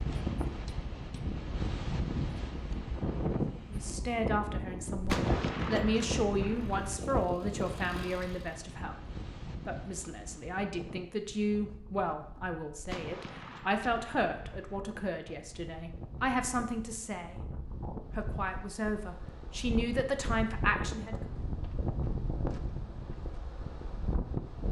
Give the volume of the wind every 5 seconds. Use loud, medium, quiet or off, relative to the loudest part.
loud, loud, quiet, medium, loud.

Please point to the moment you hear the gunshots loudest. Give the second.
5 s.